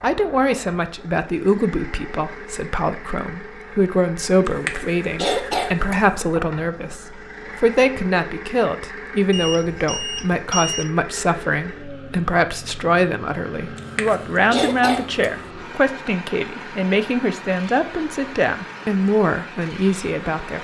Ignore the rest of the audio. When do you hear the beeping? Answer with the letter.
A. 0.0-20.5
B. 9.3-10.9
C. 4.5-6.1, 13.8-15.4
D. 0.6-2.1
B.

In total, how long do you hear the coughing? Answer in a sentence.
You can hear the coughing for 3 seconds altogether.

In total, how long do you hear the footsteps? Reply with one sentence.
You can't hear the footsteps here.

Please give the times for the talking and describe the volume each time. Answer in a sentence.
The talking can be heard from 0.0 to 20.5 s, at a steady volume.